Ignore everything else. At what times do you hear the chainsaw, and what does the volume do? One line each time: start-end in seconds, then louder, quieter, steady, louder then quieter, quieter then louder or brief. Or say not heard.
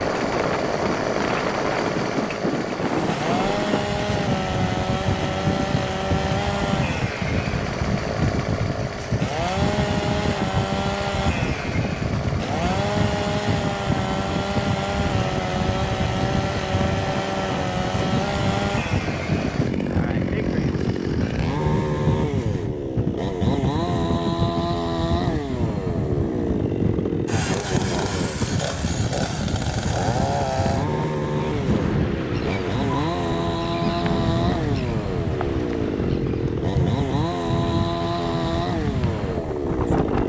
0.0-40.2 steady.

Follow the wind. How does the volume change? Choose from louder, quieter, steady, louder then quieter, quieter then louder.
steady.